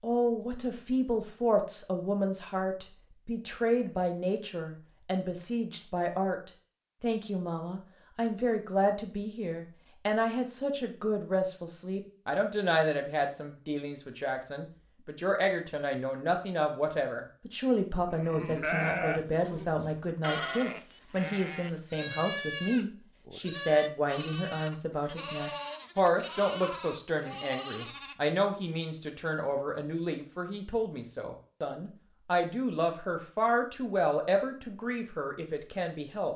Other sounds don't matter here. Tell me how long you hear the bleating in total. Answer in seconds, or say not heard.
10 s.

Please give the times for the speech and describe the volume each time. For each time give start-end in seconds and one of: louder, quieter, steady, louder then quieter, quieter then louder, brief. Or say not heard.
0.0-36.3 steady.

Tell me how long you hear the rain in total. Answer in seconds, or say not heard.
not heard.